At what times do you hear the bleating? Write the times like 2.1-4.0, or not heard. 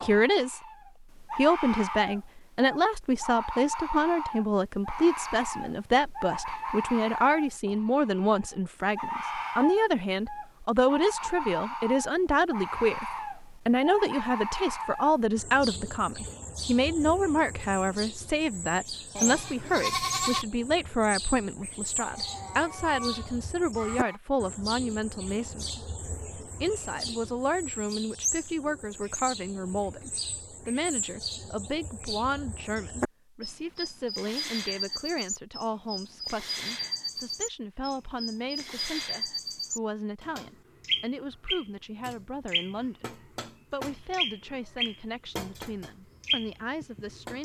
19.1-20.4.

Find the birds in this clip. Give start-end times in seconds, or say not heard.
0.0-47.4.